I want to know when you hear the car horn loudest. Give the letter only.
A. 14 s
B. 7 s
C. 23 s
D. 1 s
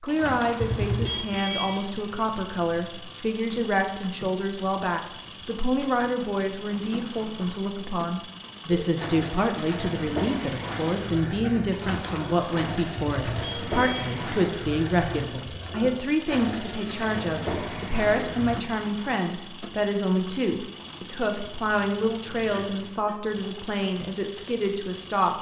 D.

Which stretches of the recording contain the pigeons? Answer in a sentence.
You can hear the pigeons from 8.7 to 18.6 s.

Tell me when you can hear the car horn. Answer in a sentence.
You can hear the car horn from 0.6 to 1.9 s, from 12.9 to 14.0 s and from 22.5 to 23.1 s.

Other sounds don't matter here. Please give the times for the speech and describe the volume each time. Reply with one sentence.
You can hear the speech from 0.0 to 25.3 s, at a steady volume.